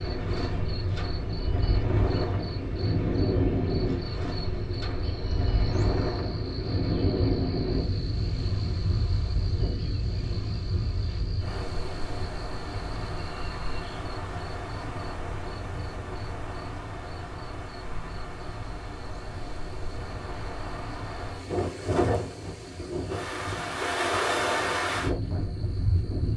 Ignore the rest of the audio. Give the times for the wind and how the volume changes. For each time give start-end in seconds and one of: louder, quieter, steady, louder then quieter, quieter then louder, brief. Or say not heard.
0.0-26.3 quieter then louder.